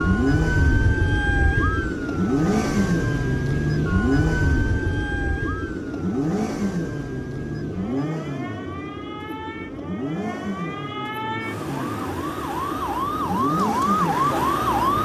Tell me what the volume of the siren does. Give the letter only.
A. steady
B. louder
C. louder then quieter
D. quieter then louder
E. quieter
D.